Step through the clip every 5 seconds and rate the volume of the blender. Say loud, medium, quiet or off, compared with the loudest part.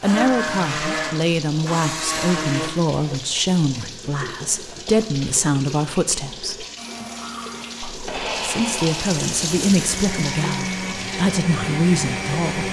loud, medium, loud.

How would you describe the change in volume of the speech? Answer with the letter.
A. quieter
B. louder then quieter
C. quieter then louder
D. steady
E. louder
D.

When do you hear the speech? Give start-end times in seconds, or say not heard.
0.0-6.7, 7.8-12.6.